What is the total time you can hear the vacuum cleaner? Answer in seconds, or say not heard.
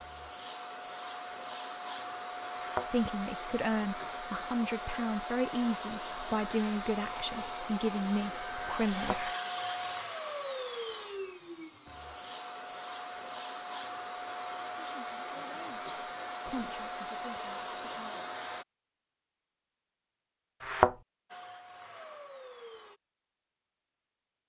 20 s.